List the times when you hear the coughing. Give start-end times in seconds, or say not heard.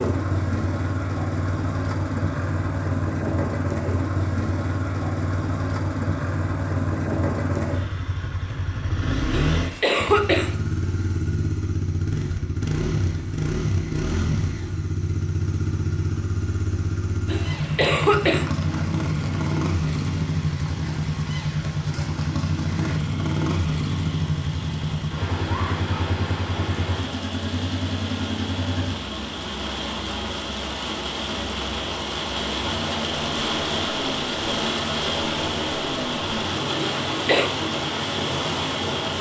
9.3-10.6, 17.2-18.5, 36.8-37.5.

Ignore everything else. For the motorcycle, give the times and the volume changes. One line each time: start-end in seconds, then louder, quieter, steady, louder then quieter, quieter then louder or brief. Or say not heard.
0.0-39.1 quieter.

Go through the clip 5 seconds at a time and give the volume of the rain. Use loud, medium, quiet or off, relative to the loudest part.
off, off, off, quiet, quiet, medium, loud, loud.